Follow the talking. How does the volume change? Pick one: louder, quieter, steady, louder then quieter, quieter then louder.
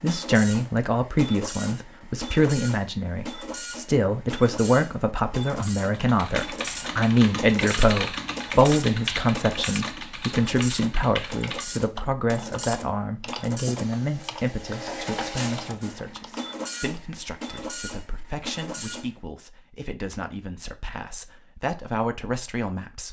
quieter.